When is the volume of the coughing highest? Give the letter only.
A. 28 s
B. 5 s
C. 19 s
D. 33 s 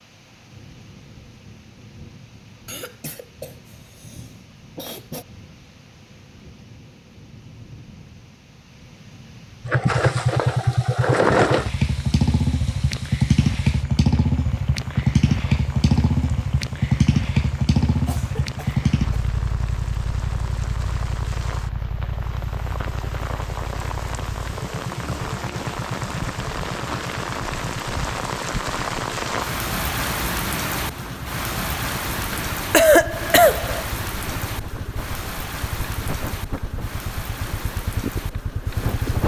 D.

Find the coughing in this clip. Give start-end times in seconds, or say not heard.
2.6-5.2, 18.1-19.3, 32.3-33.9.